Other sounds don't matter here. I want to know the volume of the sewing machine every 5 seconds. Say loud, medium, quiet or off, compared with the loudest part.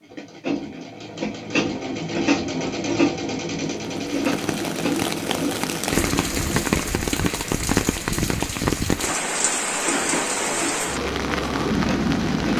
loud, medium, medium.